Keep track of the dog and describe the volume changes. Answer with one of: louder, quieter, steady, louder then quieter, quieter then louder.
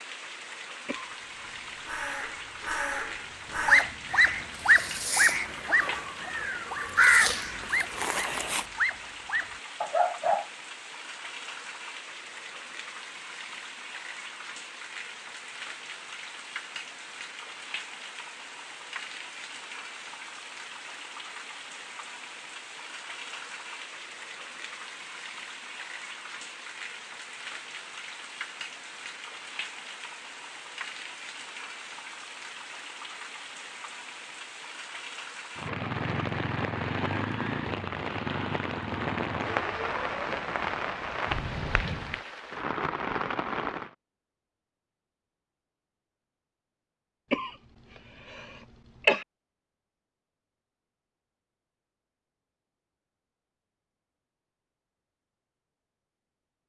quieter then louder.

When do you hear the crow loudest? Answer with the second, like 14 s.
7 s.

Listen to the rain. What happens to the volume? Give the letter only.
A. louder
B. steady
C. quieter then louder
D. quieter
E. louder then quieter
A.